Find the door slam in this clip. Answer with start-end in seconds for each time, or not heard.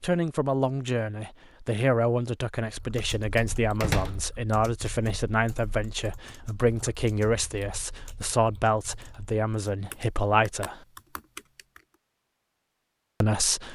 3.8-4.3.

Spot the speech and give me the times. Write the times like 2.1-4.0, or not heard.
0.0-10.8, 13.2-13.7.